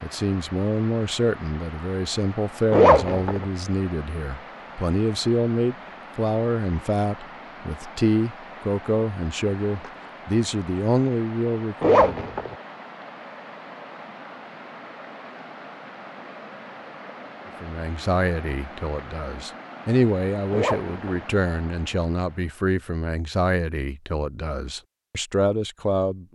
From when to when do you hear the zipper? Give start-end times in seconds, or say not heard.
2.7-3.5, 11.8-12.6, 20.5-21.2.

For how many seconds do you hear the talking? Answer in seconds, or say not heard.
21 s.